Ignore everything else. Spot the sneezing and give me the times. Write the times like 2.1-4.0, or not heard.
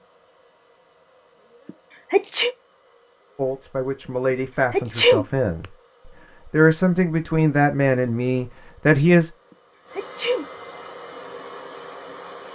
1.6-2.5, 4.7-5.7, 9.9-10.4.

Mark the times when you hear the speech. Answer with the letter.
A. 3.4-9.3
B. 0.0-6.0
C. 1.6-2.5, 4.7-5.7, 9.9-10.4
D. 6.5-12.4
A.